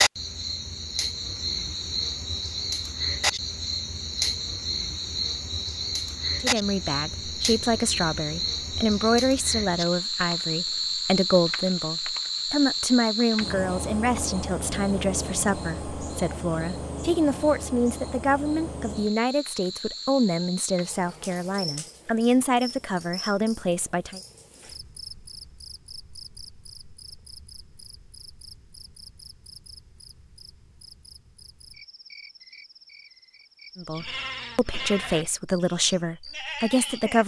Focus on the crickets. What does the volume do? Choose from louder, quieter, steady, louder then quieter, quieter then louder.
quieter.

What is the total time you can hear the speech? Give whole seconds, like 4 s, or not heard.
21 s.